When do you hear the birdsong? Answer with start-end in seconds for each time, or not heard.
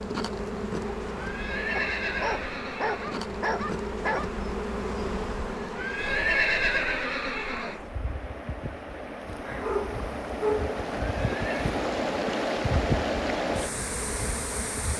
not heard.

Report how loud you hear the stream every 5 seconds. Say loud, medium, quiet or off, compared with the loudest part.
medium, medium, loud.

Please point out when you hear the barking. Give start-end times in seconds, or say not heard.
1.8-4.3, 9.4-10.8.